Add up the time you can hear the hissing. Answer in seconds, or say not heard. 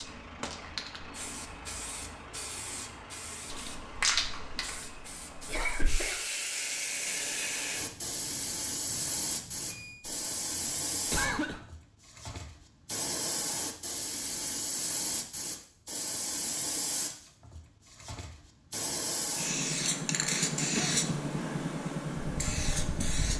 23 s.